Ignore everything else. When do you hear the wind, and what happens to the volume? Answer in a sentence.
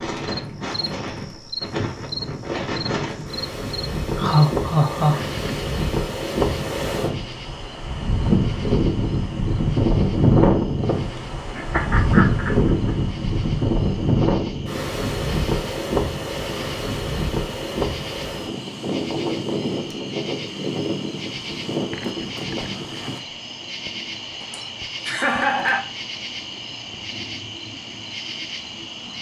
The wind can be heard from 0.0 to 23.2 s, getting louder then quieter.